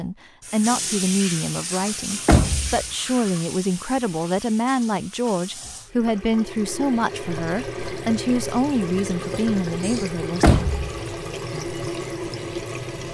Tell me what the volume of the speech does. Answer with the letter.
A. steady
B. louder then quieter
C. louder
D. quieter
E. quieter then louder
A.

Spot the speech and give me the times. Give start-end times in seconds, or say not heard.
0.0-10.6.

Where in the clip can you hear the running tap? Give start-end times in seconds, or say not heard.
0.4-13.0.